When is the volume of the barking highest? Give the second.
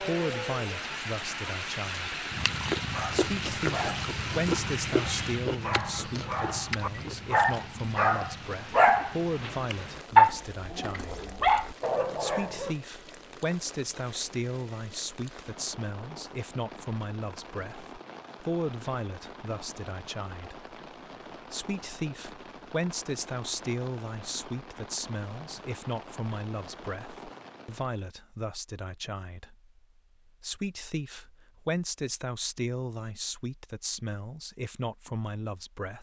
10 s.